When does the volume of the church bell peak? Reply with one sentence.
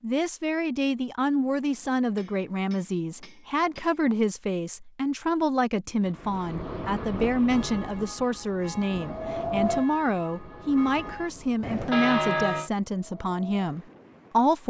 The volume of the church bell peaks at 12 seconds.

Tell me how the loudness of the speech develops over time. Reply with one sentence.
The loudness of the speech stays about the same.